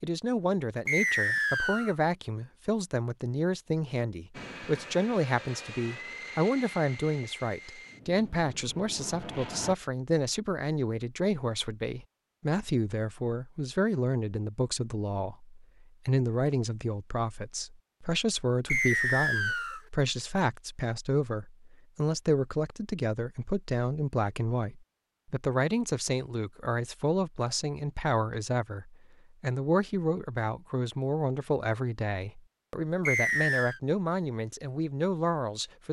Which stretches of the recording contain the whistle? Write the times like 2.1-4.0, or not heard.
0.8-1.9, 18.6-19.8, 33.0-33.8.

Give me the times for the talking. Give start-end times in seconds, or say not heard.
0.0-35.8.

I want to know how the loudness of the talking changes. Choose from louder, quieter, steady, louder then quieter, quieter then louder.
steady.